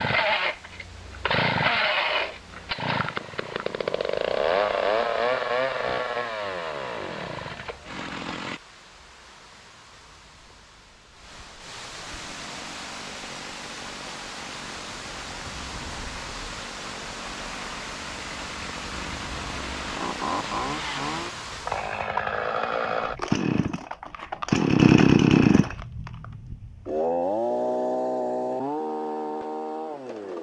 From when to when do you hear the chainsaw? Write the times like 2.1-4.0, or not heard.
0.0-8.6, 12.1-30.3.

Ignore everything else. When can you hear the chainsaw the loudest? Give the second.
25 s.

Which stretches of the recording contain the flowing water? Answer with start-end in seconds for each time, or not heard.
0.0-22.1.